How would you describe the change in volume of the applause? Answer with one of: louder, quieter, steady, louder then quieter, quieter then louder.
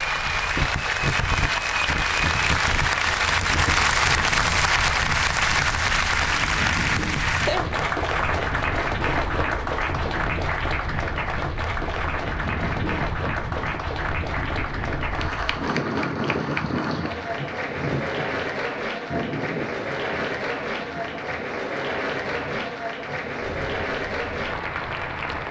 quieter.